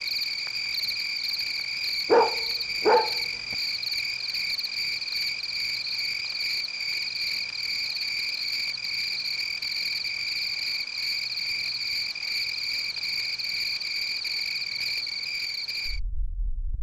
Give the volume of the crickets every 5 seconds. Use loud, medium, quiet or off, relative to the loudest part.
loud, loud, loud, medium.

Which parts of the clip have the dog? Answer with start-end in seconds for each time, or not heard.
2.0-3.5.